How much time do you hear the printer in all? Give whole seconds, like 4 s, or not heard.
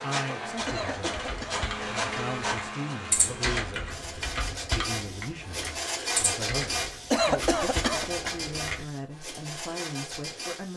11 s.